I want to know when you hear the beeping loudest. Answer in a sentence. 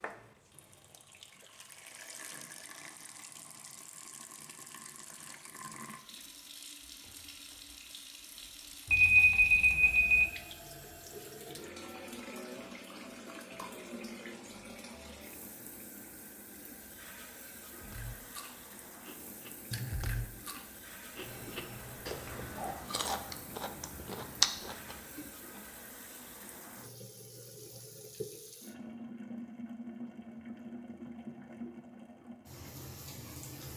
The loudest moment of the beeping is at 9 seconds.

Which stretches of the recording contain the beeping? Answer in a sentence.
The beeping can be heard from 8.8 to 10.3 s and from 21.1 to 22.8 s.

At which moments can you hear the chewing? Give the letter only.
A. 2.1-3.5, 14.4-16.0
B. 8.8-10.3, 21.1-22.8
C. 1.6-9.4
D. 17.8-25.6
D.